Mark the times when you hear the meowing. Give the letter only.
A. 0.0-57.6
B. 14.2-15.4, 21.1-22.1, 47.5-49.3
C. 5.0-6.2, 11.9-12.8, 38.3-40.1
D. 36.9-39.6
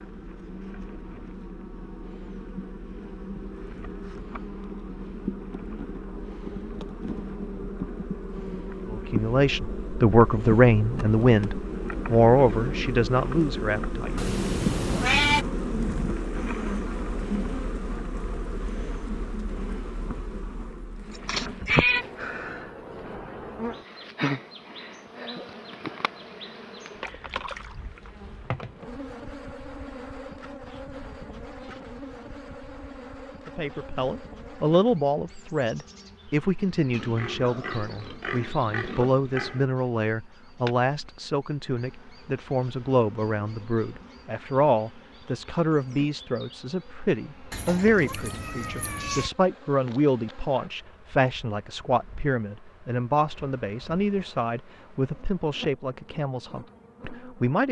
B.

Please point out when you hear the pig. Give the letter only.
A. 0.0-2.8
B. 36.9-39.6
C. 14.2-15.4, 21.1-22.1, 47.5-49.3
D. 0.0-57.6
B.